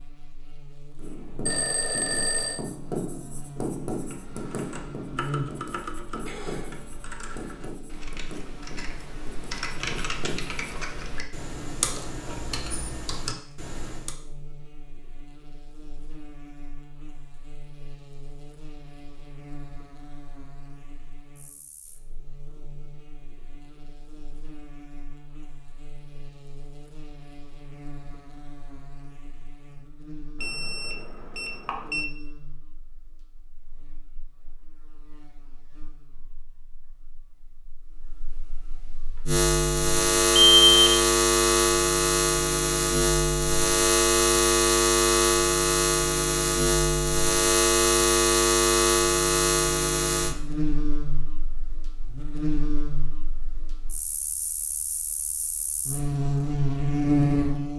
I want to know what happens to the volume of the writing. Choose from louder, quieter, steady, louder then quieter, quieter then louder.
quieter.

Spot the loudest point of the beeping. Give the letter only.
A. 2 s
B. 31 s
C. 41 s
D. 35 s
C.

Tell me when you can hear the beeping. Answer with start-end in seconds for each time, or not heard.
1.4-2.6, 30.4-32.0, 40.4-41.0.